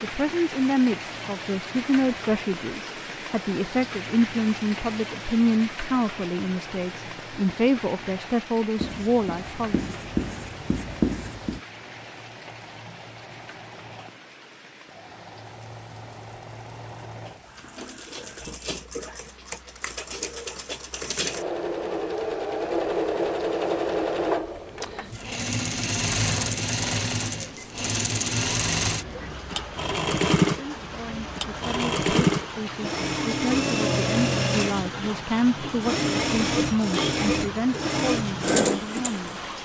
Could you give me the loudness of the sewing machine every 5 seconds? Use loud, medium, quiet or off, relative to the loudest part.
quiet, quiet, quiet, quiet, loud, loud, loud, loud.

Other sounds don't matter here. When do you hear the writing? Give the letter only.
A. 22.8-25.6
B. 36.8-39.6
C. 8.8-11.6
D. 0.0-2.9
C.